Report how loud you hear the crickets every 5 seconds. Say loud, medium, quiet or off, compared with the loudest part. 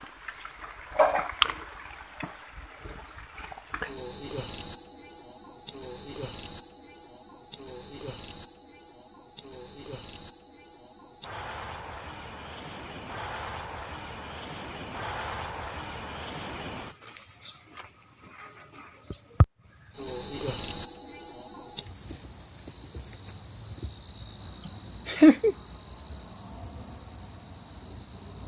loud, medium, medium, loud, loud, loud.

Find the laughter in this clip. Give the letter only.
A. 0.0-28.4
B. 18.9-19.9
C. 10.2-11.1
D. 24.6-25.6
D.